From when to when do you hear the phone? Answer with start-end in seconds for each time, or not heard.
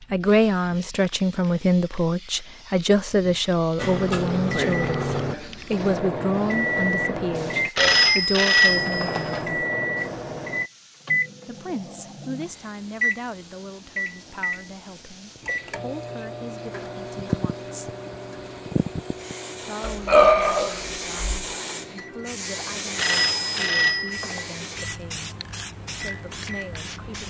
7.8-9.4, 22.9-24.4.